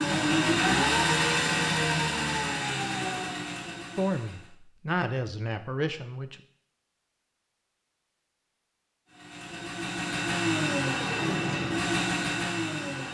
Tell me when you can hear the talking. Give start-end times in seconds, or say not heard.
4.0-6.4.